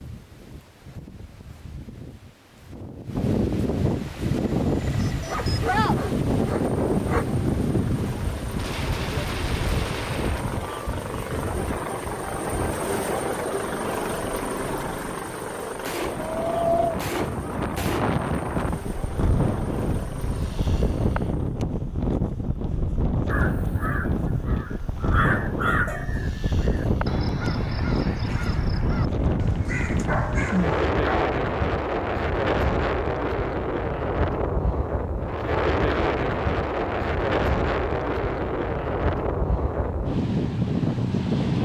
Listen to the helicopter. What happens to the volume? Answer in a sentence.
The volume of the helicopter goes up, then down.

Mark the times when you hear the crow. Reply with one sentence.
The crow can be heard from 23.2 to 30.9 s.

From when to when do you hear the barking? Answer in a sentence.
You can hear the barking from 5.2 to 7.2 s and from 29.9 to 31.4 s.